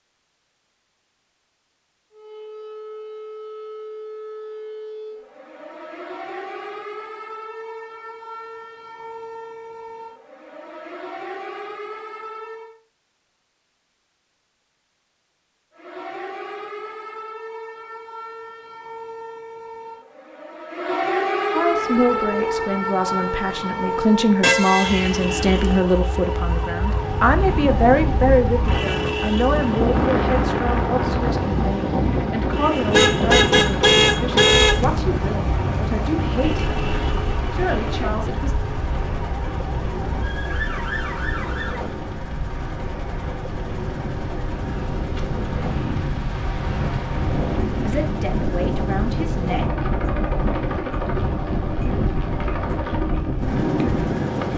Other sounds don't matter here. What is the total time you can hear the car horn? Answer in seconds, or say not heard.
3 s.